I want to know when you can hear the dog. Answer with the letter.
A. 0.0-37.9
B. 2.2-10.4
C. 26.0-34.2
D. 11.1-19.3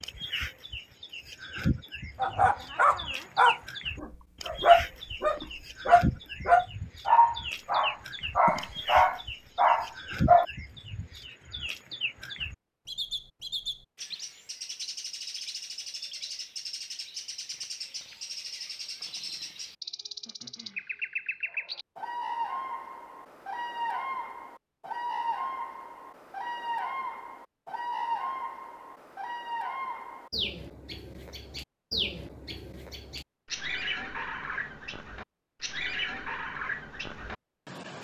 B.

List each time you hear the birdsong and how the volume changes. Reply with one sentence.
You can hear the birdsong from 0.0 to 37.9 s, at a steady volume.